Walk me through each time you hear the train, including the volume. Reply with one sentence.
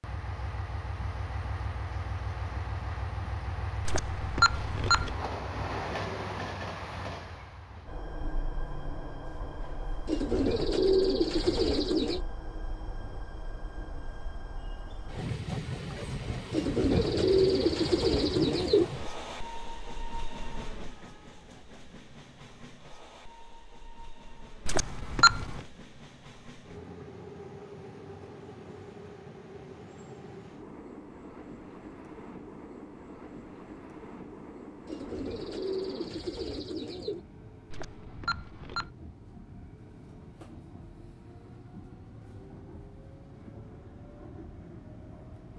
The train can be heard from 0.0 to 45.5 s, getting quieter.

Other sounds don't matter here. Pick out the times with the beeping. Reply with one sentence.
The beeping can be heard from 3.9 to 5.2 s, from 24.6 to 25.6 s and from 37.7 to 38.9 s.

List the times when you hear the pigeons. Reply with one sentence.
You can hear the pigeons from 10.1 to 12.2 s, from 16.5 to 18.9 s and from 34.9 to 37.2 s.